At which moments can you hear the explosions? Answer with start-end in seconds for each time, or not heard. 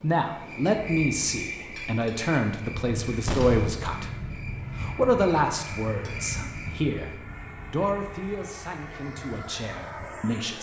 3.2-3.9.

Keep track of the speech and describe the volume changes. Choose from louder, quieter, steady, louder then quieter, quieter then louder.
quieter.